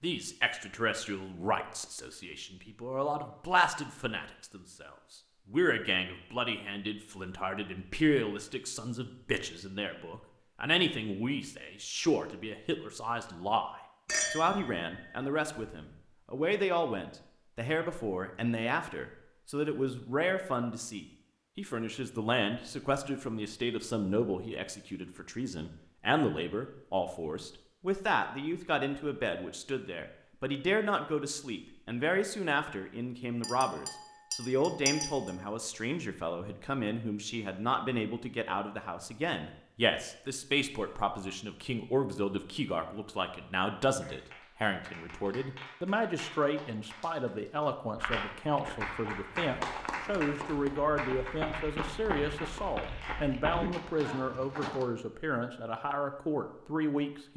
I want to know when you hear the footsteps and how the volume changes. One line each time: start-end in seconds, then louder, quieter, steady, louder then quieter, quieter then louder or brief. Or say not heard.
48.0-54.9 louder.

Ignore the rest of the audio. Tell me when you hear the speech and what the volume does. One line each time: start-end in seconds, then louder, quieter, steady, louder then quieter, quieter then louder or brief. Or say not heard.
0.0-57.3 steady.